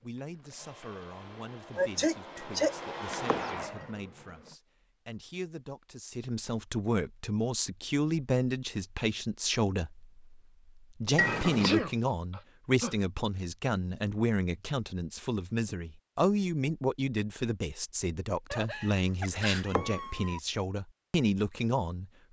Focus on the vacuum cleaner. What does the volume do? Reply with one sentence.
The loudness of the vacuum cleaner goes up.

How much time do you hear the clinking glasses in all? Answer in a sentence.
The clinking glasses can be heard for 4 seconds in total.